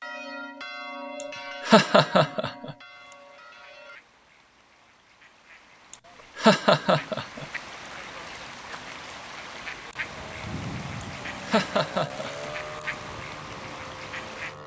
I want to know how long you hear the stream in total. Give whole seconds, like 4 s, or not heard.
not heard.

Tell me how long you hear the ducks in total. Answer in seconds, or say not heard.
12 s.